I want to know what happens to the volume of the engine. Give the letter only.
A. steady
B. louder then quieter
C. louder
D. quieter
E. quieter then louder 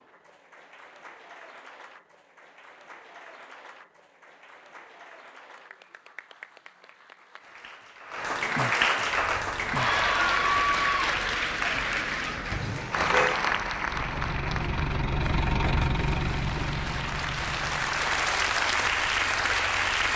B.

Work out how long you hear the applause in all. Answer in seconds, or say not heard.
20 s.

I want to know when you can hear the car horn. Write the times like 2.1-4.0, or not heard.
12.5-13.4.